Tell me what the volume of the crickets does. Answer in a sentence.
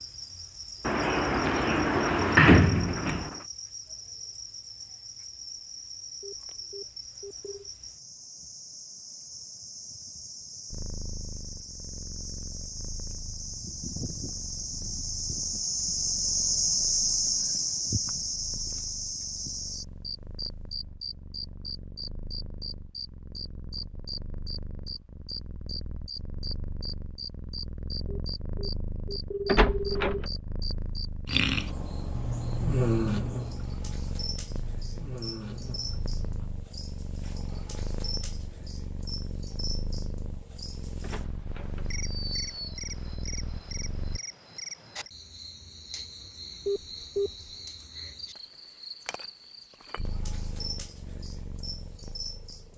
The loudness of the crickets goes up, then down.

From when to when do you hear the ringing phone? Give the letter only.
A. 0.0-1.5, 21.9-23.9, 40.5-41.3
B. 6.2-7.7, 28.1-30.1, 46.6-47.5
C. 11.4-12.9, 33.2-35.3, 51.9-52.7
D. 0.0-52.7
B.